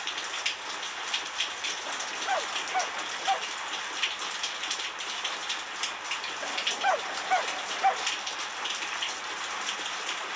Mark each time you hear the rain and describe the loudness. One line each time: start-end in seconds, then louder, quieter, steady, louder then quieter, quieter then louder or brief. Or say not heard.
0.0-10.3 steady.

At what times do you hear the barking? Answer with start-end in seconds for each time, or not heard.
1.9-3.5, 6.4-8.1.